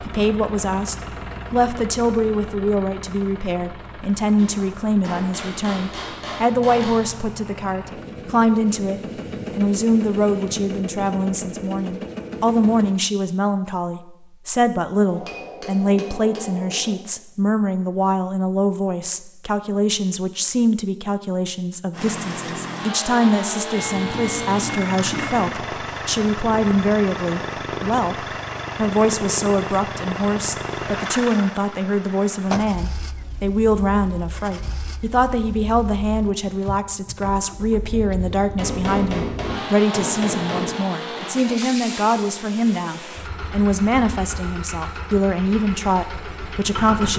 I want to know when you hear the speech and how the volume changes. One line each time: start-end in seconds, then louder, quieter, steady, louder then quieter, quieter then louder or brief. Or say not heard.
0.0-47.1 steady.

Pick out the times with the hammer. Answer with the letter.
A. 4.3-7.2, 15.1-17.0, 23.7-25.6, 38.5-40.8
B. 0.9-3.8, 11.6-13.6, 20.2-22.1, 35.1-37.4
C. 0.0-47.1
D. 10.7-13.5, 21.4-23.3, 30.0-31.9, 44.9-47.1
A.